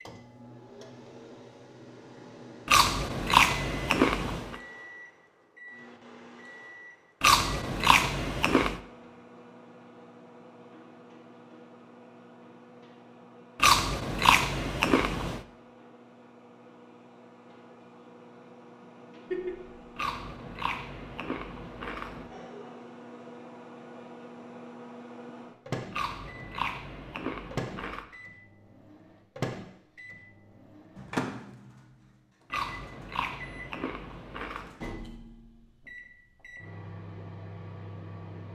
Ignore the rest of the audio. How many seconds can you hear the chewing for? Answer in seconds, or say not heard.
12 s.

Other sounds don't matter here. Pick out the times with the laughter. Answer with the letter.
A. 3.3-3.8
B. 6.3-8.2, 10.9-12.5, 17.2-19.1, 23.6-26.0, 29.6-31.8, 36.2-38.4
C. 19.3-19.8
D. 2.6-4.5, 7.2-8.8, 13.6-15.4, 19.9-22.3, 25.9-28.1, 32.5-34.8
C.